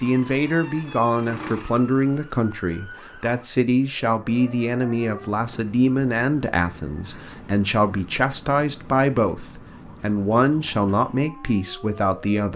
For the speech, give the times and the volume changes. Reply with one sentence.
The speech can be heard from 0.0 to 12.5 s, at a steady volume.